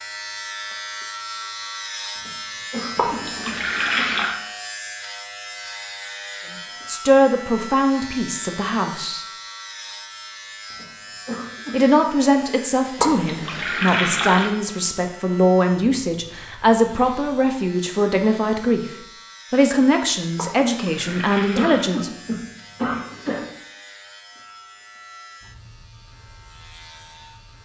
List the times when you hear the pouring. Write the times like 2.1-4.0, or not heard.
3.0-4.3, 12.9-14.5, 20.4-21.9.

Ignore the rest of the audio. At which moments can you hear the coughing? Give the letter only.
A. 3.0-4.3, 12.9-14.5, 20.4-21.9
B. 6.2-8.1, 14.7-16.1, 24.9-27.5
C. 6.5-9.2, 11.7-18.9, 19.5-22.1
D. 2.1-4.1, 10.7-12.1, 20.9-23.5
D.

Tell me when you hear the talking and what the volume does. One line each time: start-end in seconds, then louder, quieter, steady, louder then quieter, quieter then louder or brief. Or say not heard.
6.5-9.2 brief
11.7-18.9 steady
19.5-22.1 brief.